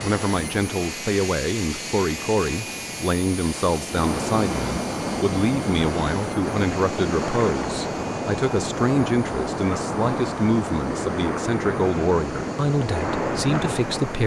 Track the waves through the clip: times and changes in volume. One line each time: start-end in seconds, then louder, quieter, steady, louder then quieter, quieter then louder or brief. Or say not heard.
0.0-14.2 louder.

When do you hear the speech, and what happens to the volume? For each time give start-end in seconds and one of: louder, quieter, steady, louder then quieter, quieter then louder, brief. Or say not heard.
0.0-14.2 steady.